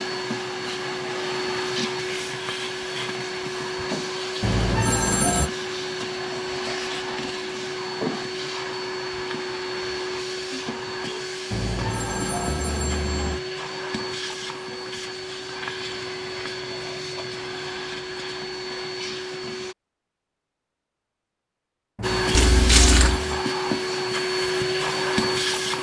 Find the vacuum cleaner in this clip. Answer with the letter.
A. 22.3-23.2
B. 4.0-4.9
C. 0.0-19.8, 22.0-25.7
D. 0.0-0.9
C.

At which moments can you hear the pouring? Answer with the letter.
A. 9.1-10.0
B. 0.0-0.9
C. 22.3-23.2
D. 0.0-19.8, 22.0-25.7
C.